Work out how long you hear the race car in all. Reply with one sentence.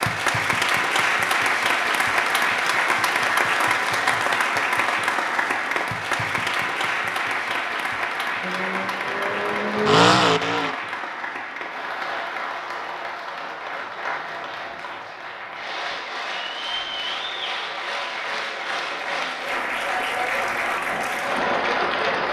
You can hear the race car for 2 seconds altogether.